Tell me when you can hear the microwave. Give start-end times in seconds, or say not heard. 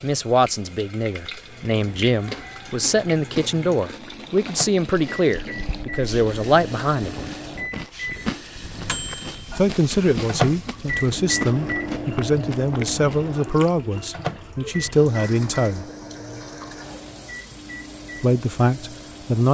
1.4-19.4.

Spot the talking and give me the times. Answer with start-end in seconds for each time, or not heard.
0.0-7.2, 9.6-15.8, 18.2-19.4.